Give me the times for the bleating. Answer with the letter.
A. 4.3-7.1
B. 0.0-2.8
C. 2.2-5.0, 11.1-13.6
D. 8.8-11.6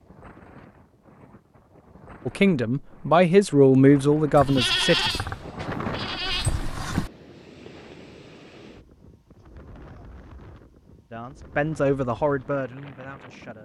A.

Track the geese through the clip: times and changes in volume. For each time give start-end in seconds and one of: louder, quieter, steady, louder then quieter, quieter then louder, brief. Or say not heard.
not heard.